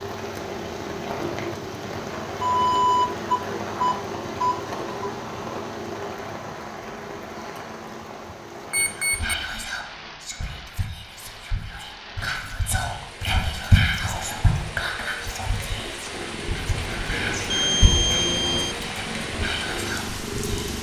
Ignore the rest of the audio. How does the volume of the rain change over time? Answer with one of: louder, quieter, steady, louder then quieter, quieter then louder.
quieter then louder.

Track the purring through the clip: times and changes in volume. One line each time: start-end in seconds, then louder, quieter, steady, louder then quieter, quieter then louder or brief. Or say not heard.
15.9-20.7 steady.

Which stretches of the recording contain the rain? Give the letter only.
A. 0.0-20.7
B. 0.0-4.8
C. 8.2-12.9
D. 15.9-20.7
A.